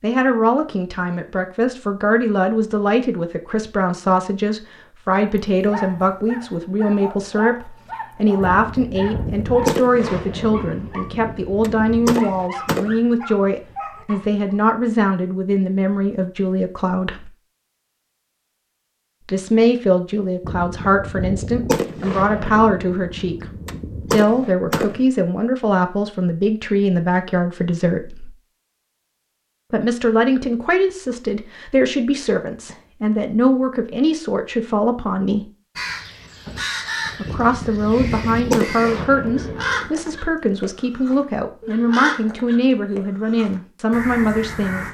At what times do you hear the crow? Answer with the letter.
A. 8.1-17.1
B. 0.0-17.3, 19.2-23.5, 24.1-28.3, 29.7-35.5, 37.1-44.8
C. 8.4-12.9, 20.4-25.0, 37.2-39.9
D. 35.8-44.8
D.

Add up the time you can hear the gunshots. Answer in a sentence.
The gunshots can be heard for 12 seconds in total.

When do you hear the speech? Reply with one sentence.
The speech can be heard from 0.0 to 17.3 s, from 19.2 to 23.5 s, from 24.1 to 28.3 s, from 29.7 to 35.5 s and from 37.1 to 44.8 s.